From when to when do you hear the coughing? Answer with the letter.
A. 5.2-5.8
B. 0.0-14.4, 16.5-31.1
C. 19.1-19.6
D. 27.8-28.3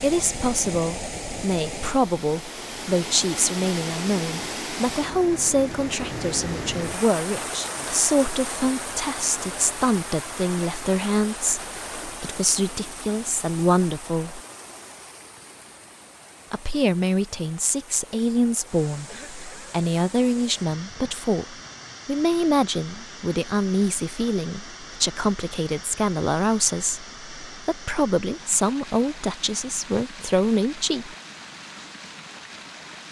C.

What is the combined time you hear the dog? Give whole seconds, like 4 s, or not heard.
not heard.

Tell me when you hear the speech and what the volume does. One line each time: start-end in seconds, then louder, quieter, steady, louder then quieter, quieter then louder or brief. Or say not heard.
0.0-14.4 steady
16.5-31.1 steady.